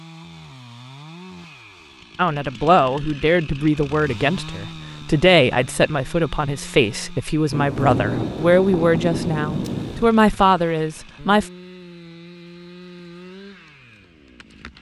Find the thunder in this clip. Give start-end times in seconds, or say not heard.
7.5-10.1.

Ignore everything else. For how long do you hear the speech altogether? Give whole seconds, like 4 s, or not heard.
9 s.